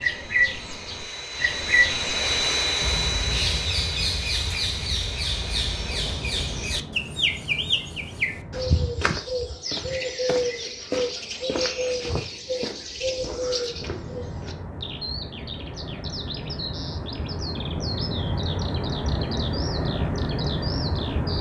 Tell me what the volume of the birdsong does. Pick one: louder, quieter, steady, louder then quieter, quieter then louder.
quieter.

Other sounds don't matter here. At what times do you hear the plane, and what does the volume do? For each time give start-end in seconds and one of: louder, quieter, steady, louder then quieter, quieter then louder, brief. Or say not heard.
0.0-9.1 louder then quieter
13.6-21.3 louder.